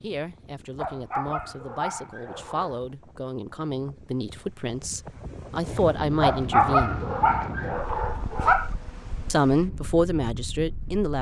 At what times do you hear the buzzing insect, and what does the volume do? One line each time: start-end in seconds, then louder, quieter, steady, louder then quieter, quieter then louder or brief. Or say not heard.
not heard.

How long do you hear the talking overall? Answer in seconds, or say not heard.
9 s.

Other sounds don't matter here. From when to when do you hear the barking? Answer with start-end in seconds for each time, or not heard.
0.8-2.9, 6.2-8.7.